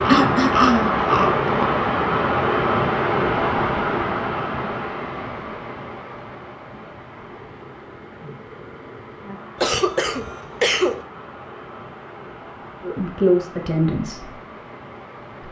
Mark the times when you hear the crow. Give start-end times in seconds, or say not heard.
0.0-1.6.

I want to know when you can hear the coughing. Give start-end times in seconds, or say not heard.
0.1-1.0, 9.6-10.9.